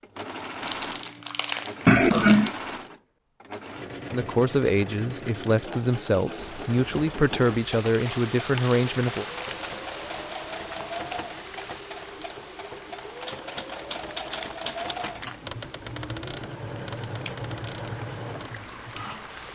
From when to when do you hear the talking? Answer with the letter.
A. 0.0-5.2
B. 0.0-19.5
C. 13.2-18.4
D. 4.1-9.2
D.